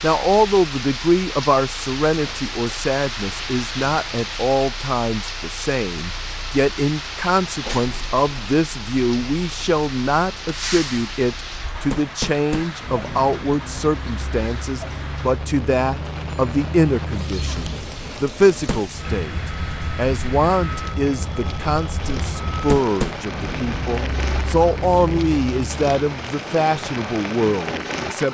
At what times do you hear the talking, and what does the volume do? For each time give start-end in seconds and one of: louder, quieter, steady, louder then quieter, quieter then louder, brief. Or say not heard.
0.0-28.2 steady.